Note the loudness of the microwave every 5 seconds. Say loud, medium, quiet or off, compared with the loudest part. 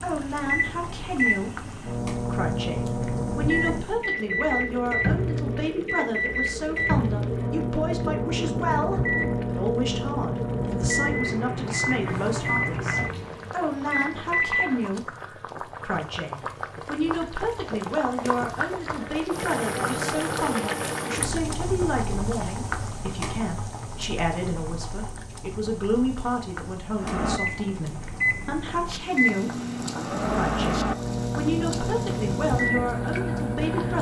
loud, loud, loud, off, off, loud, loud.